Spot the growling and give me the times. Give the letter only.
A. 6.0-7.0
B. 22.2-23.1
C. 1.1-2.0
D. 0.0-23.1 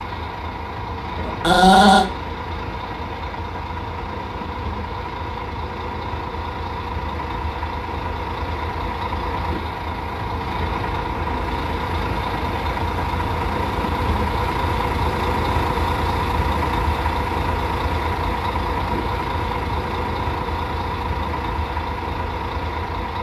C.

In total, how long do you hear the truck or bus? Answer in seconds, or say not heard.
23 s.